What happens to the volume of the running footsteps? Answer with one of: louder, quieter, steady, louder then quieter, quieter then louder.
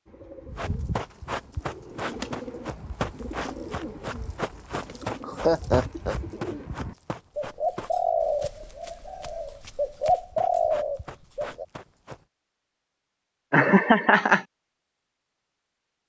quieter.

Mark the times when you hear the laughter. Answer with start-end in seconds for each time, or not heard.
5.0-6.2, 13.5-14.4.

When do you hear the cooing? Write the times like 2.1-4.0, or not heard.
0.1-11.7.